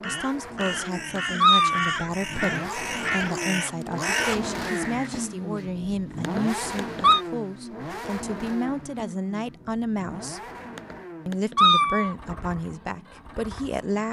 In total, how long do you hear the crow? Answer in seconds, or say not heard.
5 s.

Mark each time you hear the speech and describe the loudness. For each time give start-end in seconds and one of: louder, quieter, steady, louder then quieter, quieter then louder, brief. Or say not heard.
0.0-10.4 steady
11.2-14.0 brief.